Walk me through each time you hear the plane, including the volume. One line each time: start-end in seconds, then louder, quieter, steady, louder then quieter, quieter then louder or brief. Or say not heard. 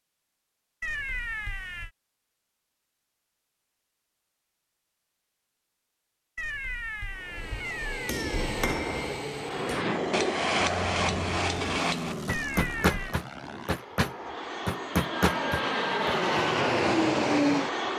9.3-17.9 quieter then louder.